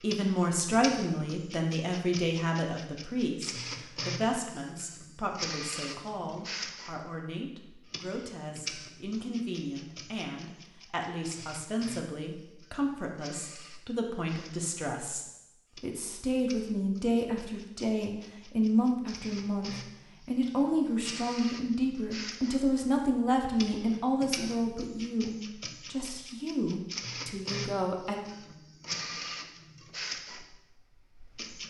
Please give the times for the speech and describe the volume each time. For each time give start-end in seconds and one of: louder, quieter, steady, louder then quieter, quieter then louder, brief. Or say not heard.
0.0-28.1 quieter then louder.